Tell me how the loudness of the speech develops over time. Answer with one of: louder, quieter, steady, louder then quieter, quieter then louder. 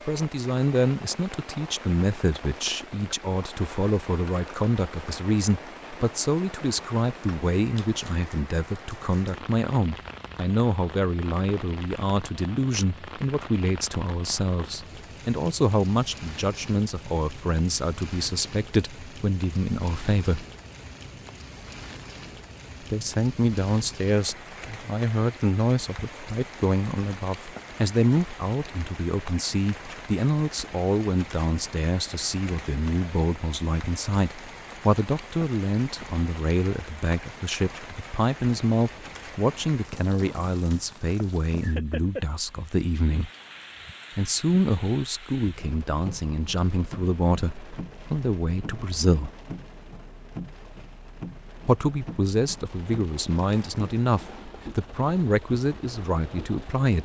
steady.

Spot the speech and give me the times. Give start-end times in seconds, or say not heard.
0.1-20.4, 22.8-43.3, 44.1-49.3, 51.6-57.0.